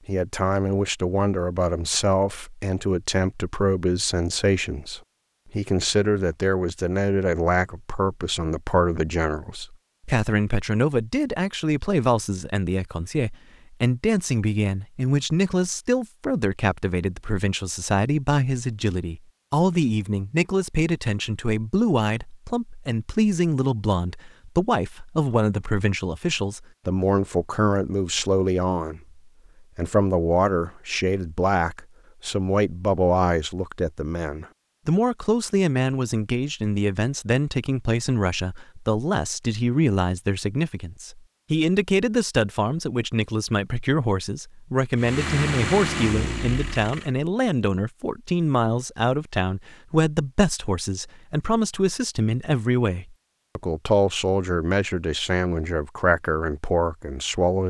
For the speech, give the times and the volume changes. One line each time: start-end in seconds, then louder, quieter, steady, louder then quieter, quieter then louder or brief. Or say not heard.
0.1-57.6 steady.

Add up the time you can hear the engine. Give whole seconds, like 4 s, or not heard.
2 s.